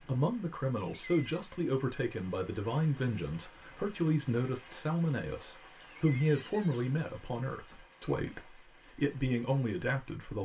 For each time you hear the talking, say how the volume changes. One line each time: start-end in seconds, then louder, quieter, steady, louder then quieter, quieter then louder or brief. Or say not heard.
0.0-10.3 steady.